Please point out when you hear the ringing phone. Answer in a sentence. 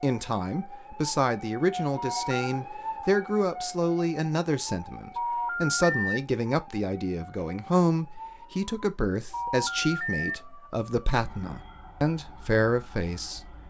The ringing phone can be heard from 1.9 to 2.4 s, from 5.2 to 6.2 s and from 9.3 to 10.3 s.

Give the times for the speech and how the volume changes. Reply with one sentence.
The speech can be heard from 0.0 to 13.4 s, at a steady volume.